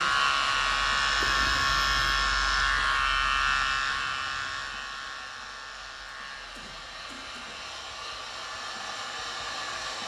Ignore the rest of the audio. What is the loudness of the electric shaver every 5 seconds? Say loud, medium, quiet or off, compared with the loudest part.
loud, quiet.